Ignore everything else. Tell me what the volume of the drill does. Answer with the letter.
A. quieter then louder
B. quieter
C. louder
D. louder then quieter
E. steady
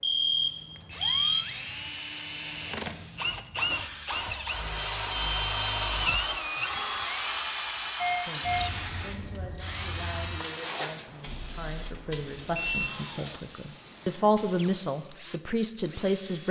D.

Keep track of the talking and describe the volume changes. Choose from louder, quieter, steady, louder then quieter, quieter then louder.
louder.